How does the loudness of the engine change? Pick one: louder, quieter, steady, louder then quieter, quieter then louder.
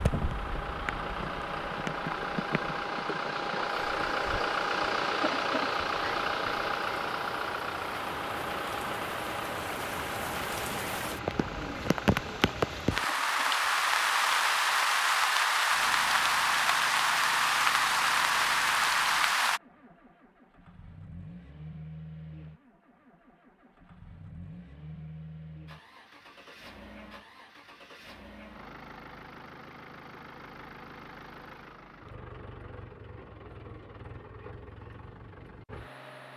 quieter.